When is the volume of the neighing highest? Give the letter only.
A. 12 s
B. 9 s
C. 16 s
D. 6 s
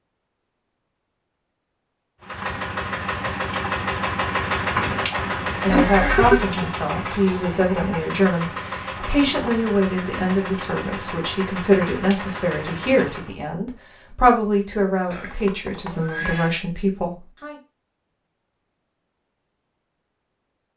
D.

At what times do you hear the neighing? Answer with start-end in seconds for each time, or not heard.
5.7-6.5, 15.1-16.6.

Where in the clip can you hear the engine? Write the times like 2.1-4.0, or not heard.
2.2-13.3.